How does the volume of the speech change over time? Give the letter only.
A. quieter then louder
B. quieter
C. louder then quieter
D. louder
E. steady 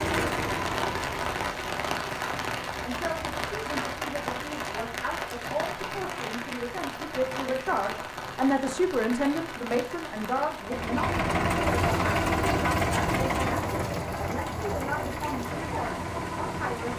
C.